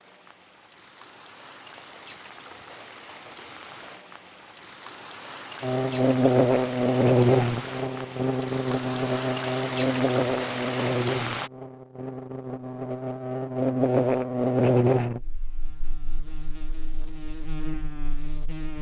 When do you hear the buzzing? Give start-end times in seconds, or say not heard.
5.6-18.7.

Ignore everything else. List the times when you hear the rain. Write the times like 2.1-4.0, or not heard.
0.0-11.5.